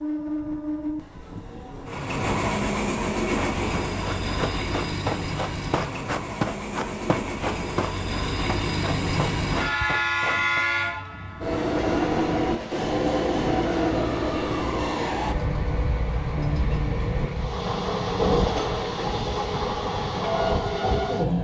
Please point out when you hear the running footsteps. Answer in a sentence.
You can hear the running footsteps from 3.2 to 10.7 s.